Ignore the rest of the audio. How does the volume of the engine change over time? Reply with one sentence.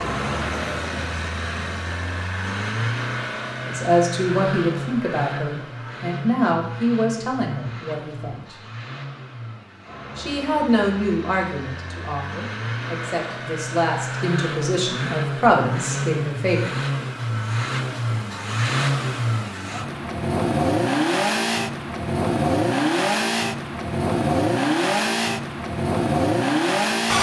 The loudness of the engine goes down, then up.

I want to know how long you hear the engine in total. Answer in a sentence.
You can hear the engine for 27 seconds altogether.